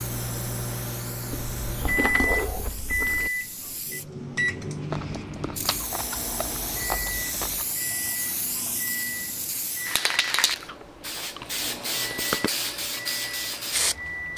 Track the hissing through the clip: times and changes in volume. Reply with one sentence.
The hissing can be heard from 0.0 to 14.3 s, getting louder.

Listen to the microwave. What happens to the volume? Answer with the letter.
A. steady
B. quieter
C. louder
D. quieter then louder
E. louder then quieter
B.